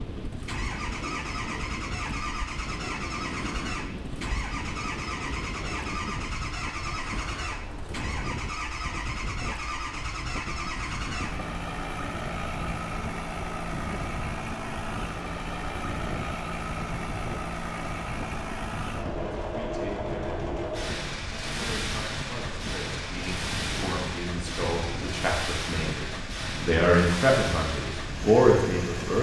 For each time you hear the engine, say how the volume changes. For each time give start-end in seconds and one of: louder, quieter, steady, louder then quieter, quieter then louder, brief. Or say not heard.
0.1-29.1 steady.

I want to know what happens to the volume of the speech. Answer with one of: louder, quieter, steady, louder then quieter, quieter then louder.
louder.